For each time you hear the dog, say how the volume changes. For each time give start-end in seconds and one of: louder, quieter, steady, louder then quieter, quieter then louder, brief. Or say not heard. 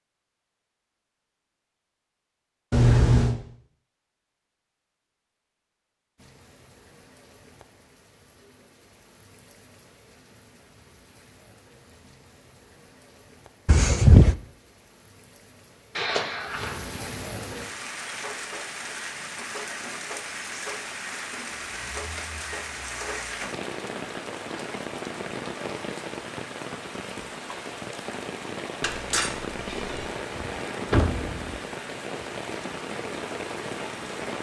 not heard.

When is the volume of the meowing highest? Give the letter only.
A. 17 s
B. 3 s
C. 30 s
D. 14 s
B.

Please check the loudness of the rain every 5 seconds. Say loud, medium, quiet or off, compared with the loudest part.
off, quiet, quiet, loud, loud, loud, loud.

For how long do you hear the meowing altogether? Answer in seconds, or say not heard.
3 s.